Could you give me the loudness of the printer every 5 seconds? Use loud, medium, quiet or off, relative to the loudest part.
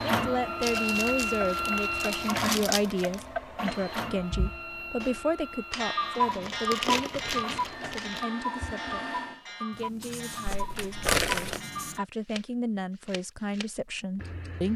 loud, medium, off.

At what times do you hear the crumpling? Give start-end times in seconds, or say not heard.
0.6-3.2, 6.3-8.2, 10.4-11.6.